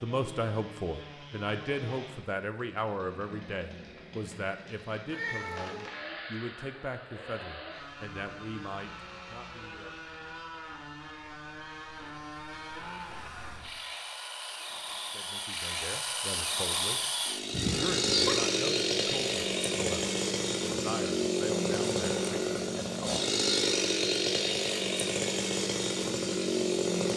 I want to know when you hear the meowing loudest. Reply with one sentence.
The volume of the meowing peaks at 18 seconds.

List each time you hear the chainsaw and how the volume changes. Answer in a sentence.
The chainsaw can be heard from 0.0 to 27.1 s, getting louder.